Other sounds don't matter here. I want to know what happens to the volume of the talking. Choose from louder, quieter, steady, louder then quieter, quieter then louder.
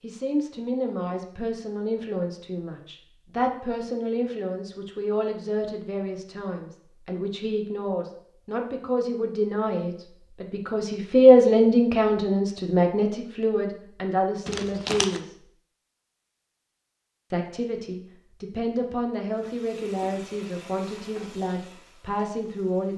louder then quieter.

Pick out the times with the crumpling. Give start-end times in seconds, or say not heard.
14.4-15.2.